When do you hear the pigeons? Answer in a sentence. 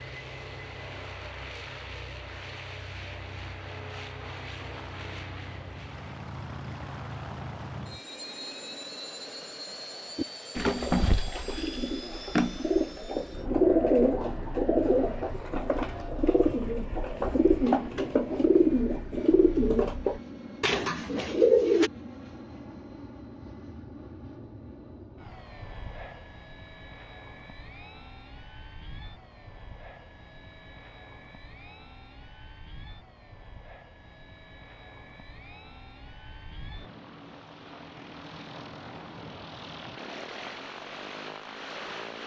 The pigeons can be heard from 10.2 to 21.9 s.